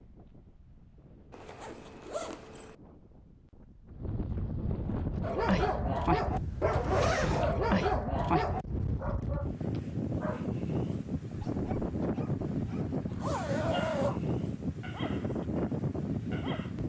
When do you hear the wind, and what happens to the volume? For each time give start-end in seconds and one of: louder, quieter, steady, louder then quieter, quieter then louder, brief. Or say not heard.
0.0-16.8 louder.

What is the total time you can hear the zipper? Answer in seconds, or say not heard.
4 s.